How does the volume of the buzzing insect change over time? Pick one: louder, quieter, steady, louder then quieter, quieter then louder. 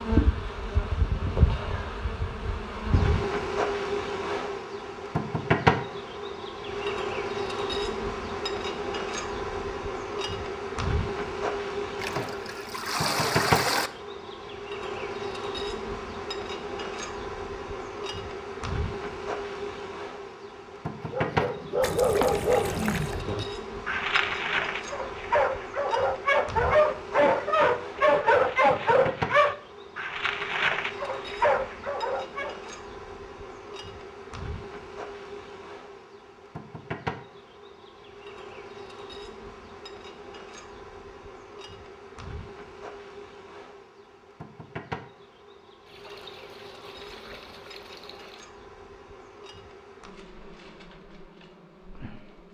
quieter.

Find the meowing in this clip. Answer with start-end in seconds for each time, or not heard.
not heard.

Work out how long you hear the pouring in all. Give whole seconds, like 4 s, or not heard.
6 s.